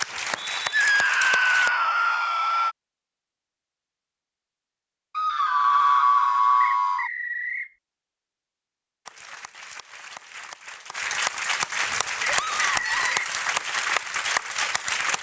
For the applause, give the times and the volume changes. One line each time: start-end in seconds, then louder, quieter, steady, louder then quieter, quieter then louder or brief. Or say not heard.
0.0-1.7 brief
9.1-15.1 louder.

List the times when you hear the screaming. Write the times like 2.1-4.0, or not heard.
0.7-2.8, 5.2-7.1, 12.2-13.2.